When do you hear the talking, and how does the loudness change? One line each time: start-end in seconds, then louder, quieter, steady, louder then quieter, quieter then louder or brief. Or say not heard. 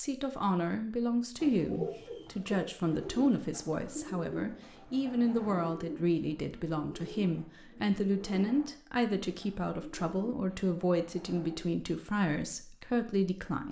0.0-13.6 steady.